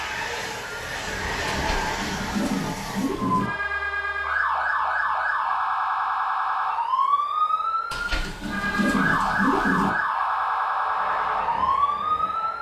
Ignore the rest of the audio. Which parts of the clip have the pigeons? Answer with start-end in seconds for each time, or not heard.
1.5-3.5, 7.9-9.9.